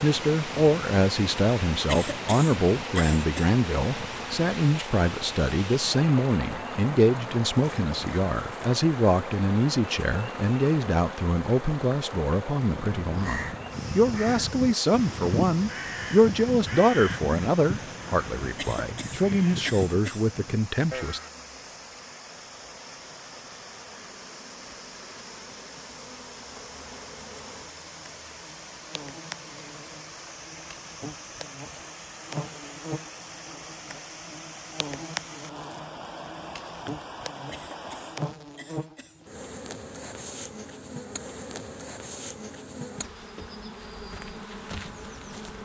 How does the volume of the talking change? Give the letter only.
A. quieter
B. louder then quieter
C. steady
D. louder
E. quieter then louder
C.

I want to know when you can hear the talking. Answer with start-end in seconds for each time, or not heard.
0.0-21.2.